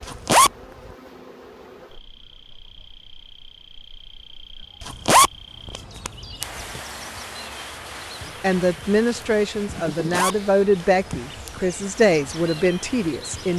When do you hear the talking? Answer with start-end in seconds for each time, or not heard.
8.4-13.5.